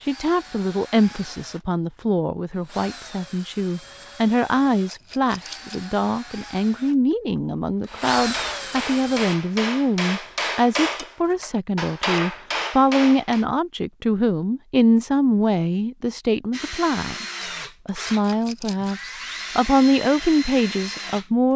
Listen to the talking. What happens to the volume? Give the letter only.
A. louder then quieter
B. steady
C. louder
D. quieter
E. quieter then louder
B.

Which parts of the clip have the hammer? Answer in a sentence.
The hammer can be heard from 7.8 to 13.4 s.